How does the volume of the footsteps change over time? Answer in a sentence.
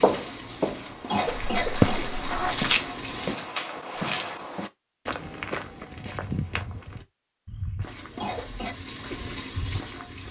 The loudness of the footsteps goes down.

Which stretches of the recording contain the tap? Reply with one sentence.
The tap can be heard from 0.0 to 3.4 s and from 7.8 to 10.2 s.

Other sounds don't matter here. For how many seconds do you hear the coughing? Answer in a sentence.
The coughing can be heard for 2 seconds in total.